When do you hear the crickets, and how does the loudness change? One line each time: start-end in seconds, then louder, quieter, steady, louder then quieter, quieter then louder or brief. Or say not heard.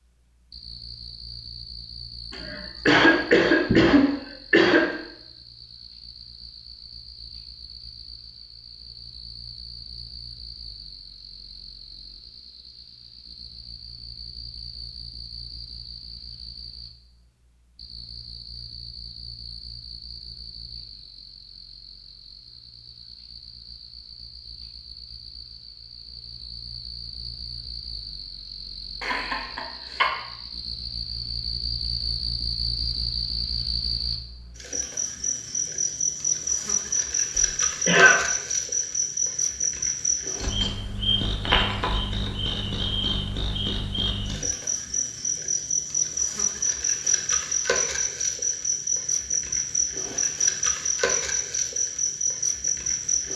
0.0-53.3 louder.